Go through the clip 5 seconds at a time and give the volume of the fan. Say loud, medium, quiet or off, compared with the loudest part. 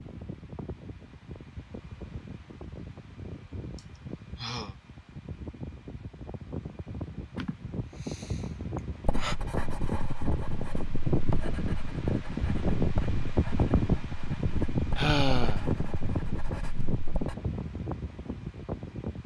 quiet, medium, loud, medium.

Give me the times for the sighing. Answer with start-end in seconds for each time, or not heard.
3.8-4.8, 7.3-9.3, 14.9-15.7.